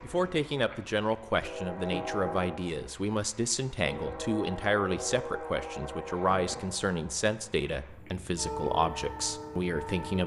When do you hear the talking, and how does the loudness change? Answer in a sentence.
You can hear the talking from 0.0 to 10.2 s, at a steady volume.